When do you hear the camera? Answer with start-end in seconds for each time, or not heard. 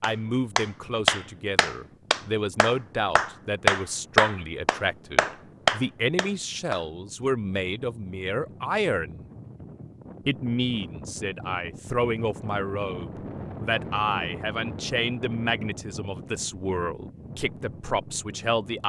not heard.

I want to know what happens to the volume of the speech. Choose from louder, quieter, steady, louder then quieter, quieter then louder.
steady.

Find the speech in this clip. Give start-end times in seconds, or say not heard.
0.0-9.3, 10.2-18.8.